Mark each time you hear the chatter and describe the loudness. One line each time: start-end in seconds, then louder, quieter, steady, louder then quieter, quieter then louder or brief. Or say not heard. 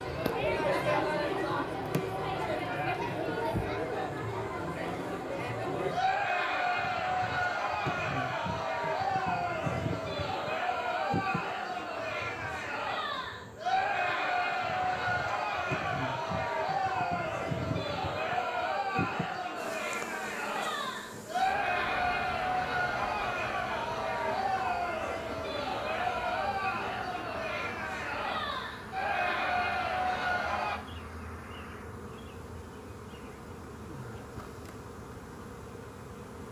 0.0-30.8 steady.